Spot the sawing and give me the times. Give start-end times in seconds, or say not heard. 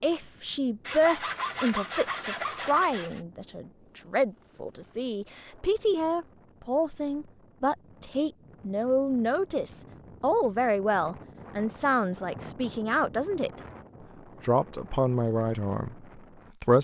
0.8-3.2.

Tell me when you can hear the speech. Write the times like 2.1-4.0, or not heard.
0.0-13.6, 14.4-16.7.